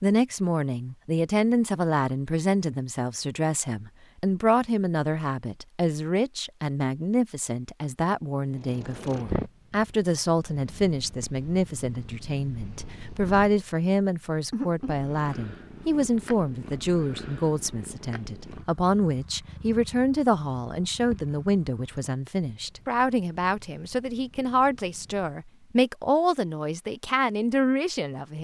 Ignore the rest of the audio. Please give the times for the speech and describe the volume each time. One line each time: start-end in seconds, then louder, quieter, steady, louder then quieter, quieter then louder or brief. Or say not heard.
0.0-28.4 steady.